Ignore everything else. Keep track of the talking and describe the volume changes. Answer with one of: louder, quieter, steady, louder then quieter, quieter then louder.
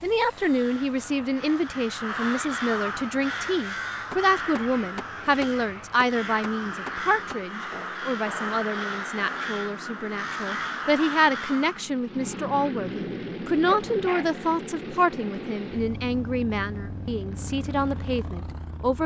steady.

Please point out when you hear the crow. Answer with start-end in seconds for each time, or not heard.
0.4-11.9.